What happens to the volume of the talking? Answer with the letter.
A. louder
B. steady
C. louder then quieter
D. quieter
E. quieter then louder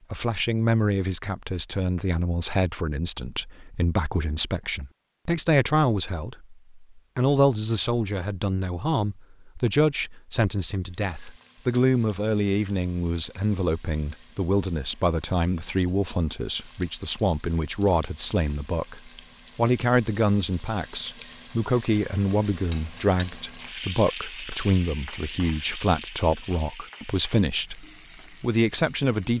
B.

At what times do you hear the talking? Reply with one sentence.
You can hear the talking from 0.1 to 29.3 s.